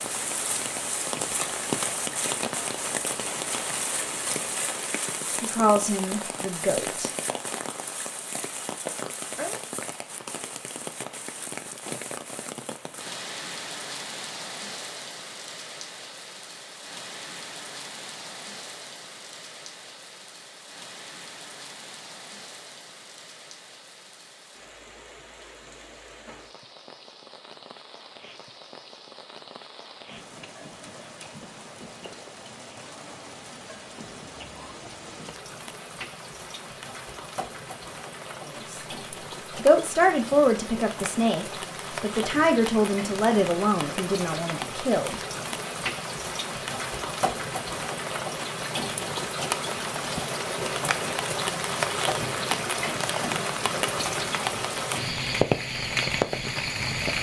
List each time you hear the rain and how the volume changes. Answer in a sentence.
You can hear the rain from 0.0 to 57.1 s, getting quieter then louder.